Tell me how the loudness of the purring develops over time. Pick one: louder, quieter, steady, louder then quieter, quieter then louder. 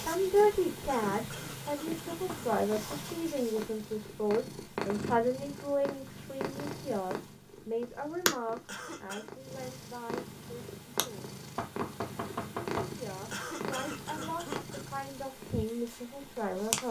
steady.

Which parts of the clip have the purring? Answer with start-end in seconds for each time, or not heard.
0.0-16.8.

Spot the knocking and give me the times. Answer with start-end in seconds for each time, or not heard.
2.2-3.1, 11.6-12.9.